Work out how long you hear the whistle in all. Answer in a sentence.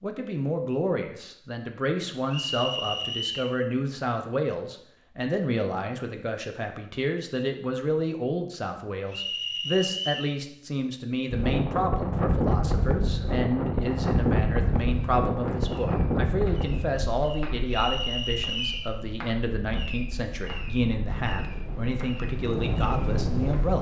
You can hear the whistle for 4 seconds altogether.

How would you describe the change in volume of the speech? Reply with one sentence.
The volume of the speech stays about the same.